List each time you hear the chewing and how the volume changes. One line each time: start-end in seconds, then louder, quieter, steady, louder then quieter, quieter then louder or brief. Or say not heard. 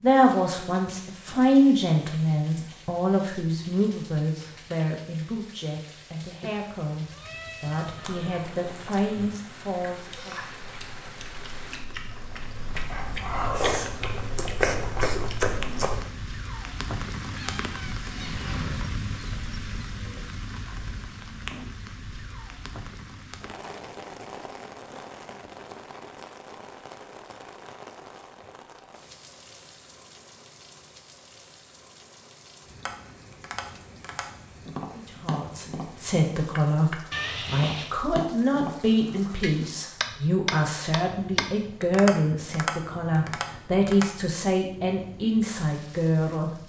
8.0-16.1 louder.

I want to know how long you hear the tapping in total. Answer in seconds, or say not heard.
11 s.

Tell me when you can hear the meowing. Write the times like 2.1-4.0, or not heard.
6.4-8.4, 17.3-18.6, 37.1-37.9.